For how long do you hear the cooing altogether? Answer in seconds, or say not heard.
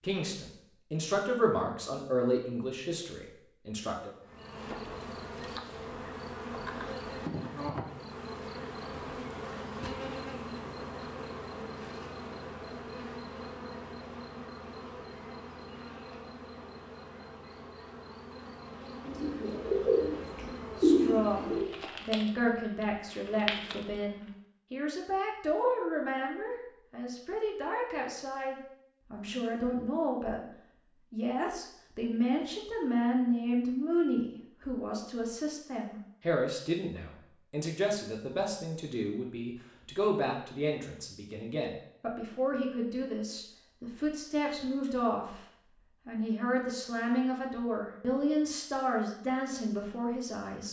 3 s.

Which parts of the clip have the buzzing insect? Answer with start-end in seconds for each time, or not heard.
4.2-24.3.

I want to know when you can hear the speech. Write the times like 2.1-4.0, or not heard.
0.0-4.1, 20.8-30.5, 31.1-45.4, 46.0-50.6.